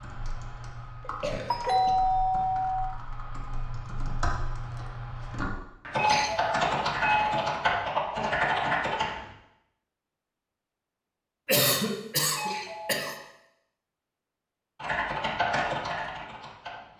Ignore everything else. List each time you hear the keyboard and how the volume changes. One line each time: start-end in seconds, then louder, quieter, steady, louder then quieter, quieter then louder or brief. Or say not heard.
0.0-9.2 louder
14.8-16.9 brief.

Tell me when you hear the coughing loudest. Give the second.
12 s.